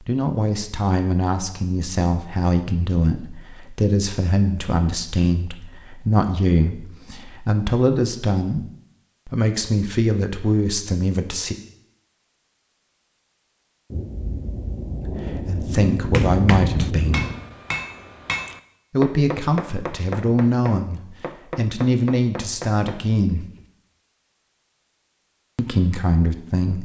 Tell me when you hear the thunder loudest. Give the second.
16 s.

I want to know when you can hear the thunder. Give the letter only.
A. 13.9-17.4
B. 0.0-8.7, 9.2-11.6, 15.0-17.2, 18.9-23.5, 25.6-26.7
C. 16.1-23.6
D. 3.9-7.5
A.